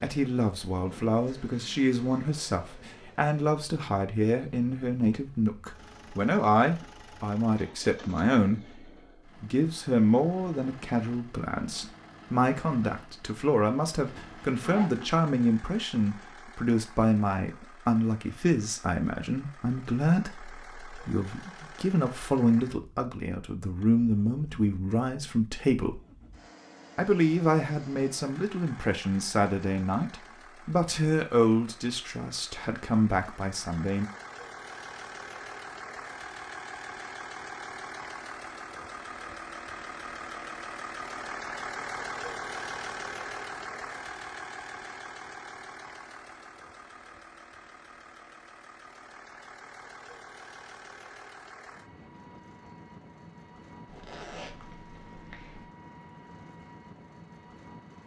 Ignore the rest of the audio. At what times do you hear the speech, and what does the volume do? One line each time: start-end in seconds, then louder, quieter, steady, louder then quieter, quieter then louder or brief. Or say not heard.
0.0-26.0 steady
26.9-34.0 steady.